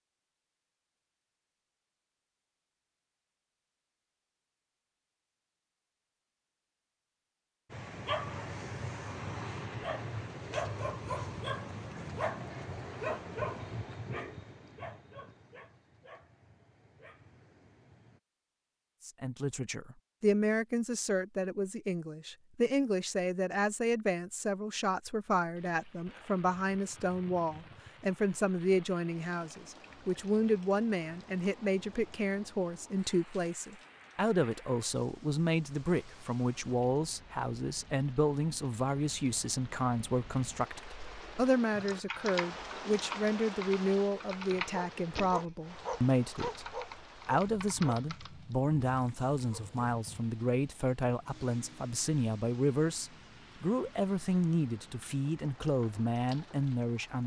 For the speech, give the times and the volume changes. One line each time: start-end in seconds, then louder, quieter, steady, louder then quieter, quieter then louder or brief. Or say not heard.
19.1-57.2 steady.